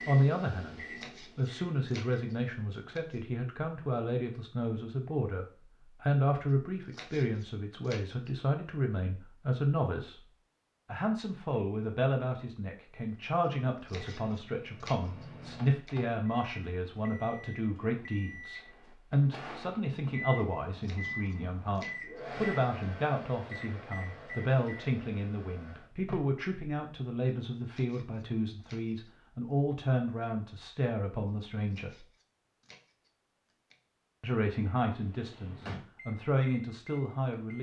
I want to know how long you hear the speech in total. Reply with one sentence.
You can hear the speech for 35 seconds altogether.